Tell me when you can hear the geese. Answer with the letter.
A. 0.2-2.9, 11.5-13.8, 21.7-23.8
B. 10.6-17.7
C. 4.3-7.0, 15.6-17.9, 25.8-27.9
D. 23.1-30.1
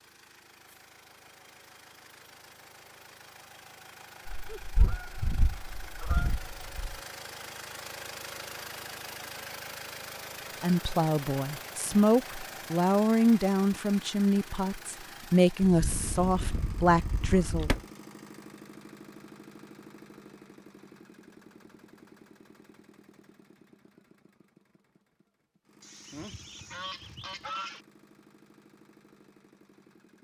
C.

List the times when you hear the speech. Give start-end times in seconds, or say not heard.
10.6-17.7.